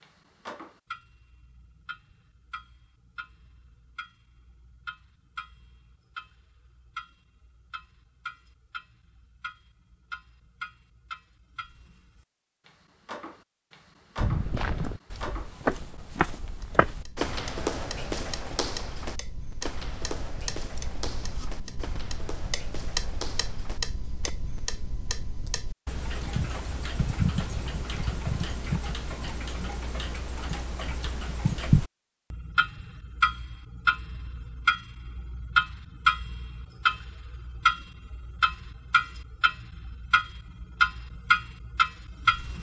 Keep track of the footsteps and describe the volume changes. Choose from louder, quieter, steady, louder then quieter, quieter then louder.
quieter.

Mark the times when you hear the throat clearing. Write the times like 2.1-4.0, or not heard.
not heard.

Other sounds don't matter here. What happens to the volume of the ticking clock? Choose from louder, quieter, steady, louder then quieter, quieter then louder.
louder.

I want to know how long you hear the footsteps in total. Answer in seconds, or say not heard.
10 s.